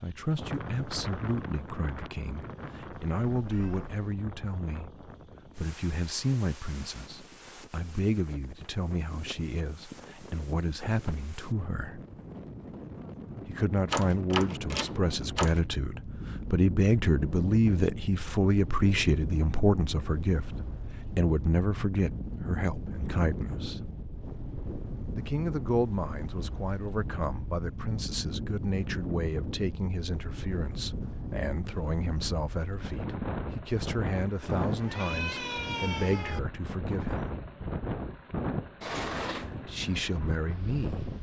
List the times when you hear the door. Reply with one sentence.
The door can be heard from 13.9 to 15.7 s and from 38.8 to 39.6 s.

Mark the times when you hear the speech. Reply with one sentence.
You can hear the speech from 0.0 to 12.0 s, from 13.4 to 23.9 s, from 25.1 to 37.4 s and from 39.6 to 41.0 s.